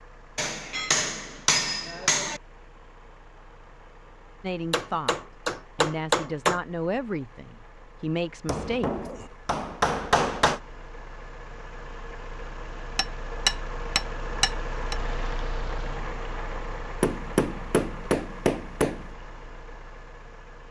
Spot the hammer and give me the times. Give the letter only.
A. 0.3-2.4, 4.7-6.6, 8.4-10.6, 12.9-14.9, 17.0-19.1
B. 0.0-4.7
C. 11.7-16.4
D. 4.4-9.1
A.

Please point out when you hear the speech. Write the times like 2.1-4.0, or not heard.
4.4-9.1.